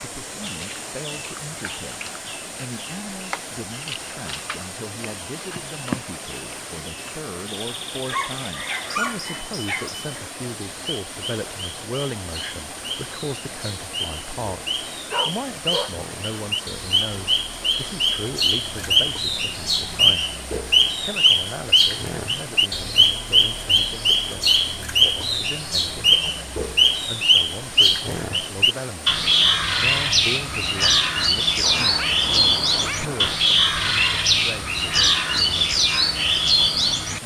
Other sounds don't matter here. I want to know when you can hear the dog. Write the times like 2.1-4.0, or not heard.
8.1-9.9, 15.1-15.9, 31.6-33.4.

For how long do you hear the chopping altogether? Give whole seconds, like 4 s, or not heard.
not heard.